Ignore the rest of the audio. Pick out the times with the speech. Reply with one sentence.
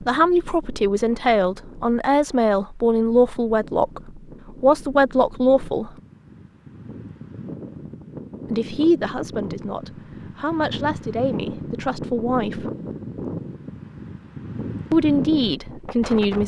You can hear the speech from 0.0 to 5.9 s, from 8.5 to 12.7 s and from 14.9 to 16.4 s.